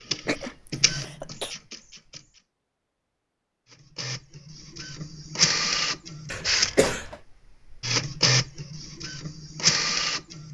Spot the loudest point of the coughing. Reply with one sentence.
The loudest moment of the coughing is at 7 seconds.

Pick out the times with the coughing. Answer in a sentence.
You can hear the coughing from 0.2 to 1.6 s and from 6.3 to 7.2 s.